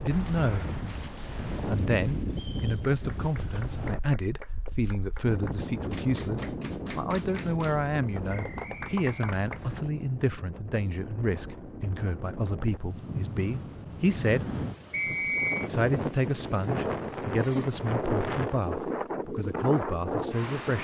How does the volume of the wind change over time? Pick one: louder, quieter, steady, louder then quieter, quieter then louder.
quieter then louder.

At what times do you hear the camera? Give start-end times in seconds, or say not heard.
not heard.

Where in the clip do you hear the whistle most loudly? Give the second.
15 s.